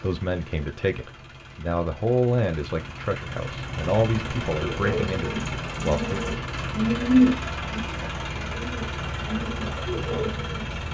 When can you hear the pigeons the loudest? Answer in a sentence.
The loudest moment of the pigeons is at 7 seconds.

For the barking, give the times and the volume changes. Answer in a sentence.
You can't hear the barking here.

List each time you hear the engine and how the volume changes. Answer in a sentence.
You can hear the engine from 0.0 to 10.8 s, getting louder.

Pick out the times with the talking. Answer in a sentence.
You can hear the talking from 0.0 to 6.2 s.